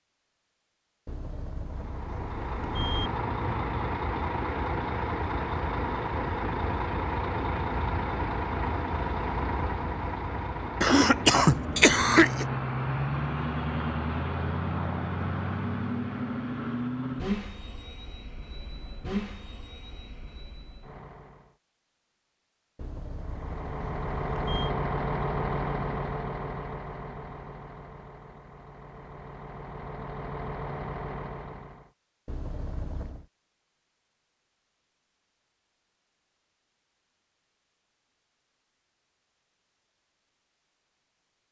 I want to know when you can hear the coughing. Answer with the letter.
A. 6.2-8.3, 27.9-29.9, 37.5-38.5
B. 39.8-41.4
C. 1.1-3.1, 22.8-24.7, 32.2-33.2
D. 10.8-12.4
D.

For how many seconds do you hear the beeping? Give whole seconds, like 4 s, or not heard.
5 s.